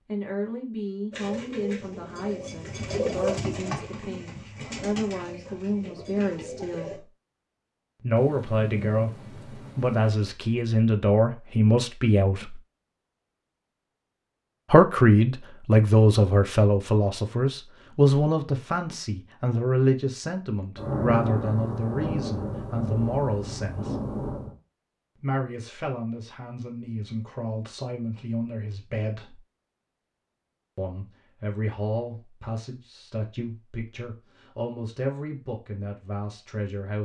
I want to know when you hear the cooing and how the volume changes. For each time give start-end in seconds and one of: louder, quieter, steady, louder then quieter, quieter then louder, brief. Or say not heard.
1.1-7.0 louder then quieter.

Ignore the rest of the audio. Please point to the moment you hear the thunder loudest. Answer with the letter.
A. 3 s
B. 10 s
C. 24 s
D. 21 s
D.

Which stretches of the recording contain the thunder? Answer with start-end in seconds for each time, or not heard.
8.2-10.2, 20.8-24.6.